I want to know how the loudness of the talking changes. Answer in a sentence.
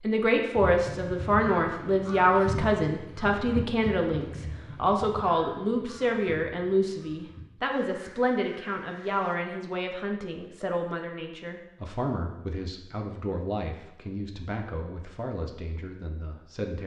The loudness of the talking goes down.